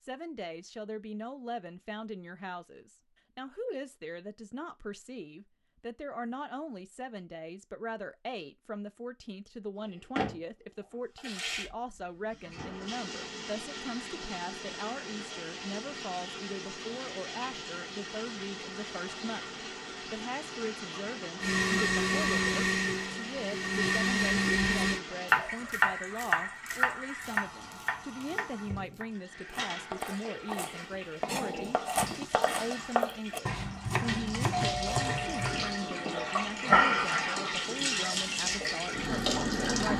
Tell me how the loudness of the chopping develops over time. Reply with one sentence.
The volume of the chopping goes down, then up.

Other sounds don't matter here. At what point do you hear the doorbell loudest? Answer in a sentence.
The loudest moment of the doorbell is at 35 seconds.